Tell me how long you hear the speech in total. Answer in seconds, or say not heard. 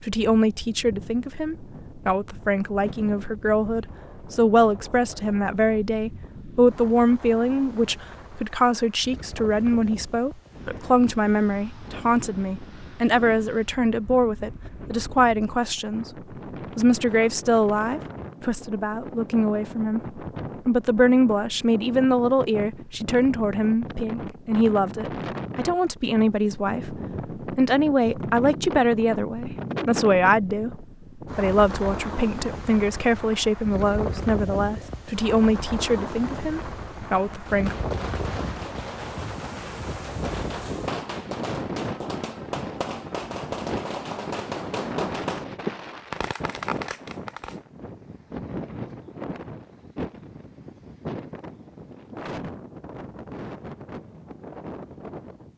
37 s.